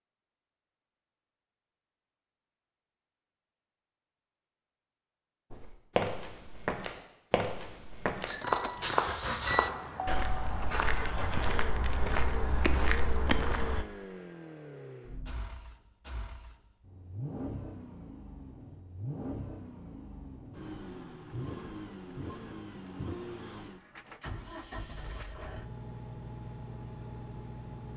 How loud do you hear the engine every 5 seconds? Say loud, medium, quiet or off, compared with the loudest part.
off, loud, medium, medium, medium, medium.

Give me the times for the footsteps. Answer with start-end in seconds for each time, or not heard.
5.5-13.8.